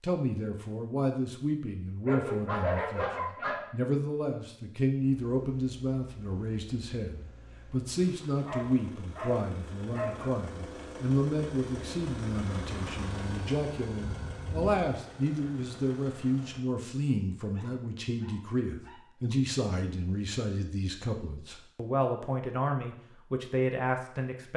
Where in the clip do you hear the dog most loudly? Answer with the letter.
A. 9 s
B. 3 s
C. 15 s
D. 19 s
B.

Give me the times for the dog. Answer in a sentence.
The dog can be heard from 2.0 to 3.6 s, from 8.4 to 10.3 s and from 17.5 to 19.0 s.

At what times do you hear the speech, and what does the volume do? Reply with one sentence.
You can hear the speech from 0.0 to 24.5 s, at a steady volume.